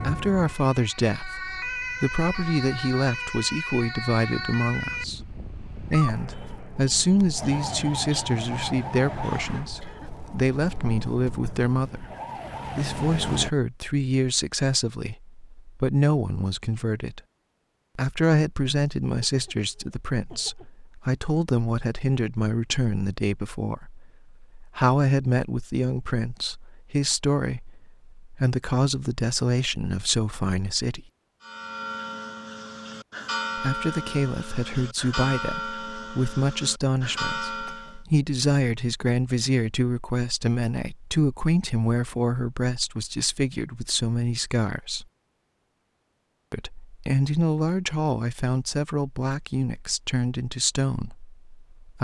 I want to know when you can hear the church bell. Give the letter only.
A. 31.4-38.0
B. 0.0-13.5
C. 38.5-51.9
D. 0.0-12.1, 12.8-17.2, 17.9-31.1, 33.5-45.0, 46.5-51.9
A.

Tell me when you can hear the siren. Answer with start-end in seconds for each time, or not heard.
0.0-13.5.